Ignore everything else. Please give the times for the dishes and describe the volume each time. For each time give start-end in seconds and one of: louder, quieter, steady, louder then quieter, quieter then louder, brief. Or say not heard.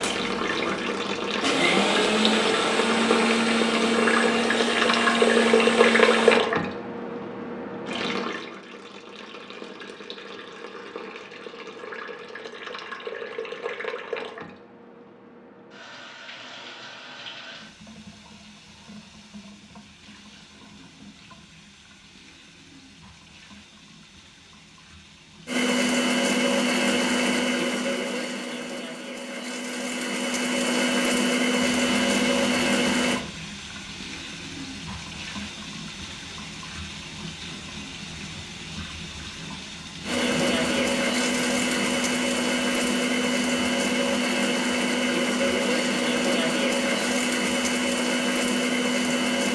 not heard.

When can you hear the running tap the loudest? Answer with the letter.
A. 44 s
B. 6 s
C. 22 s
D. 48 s
B.